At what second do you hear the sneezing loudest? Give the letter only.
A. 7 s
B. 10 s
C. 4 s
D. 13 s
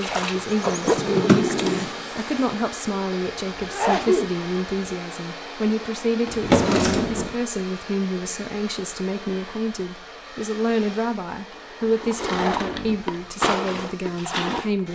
C.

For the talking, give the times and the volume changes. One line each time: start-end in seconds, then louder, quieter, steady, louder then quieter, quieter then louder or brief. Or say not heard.
0.0-14.9 steady.